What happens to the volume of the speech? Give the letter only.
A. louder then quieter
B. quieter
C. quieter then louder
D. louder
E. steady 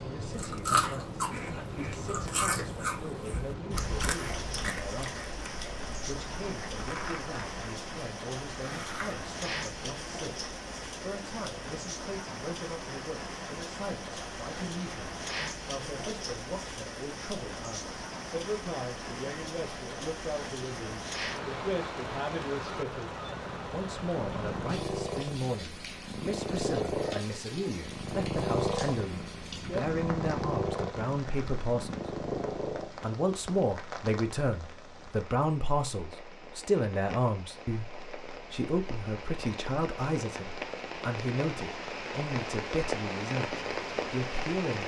D.